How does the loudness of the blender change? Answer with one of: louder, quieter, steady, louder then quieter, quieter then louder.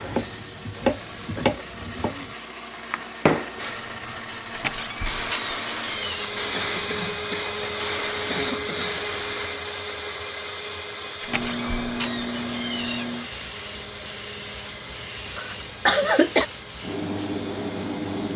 louder then quieter.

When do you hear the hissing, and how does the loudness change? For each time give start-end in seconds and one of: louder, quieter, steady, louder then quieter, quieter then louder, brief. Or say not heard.
0.0-18.3 steady.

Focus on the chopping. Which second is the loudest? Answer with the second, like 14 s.
1 s.